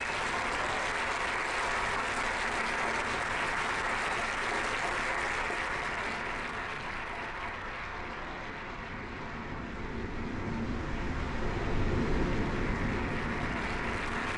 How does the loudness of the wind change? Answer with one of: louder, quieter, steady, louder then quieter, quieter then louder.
louder.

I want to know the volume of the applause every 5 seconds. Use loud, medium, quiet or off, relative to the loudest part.
loud, medium, medium.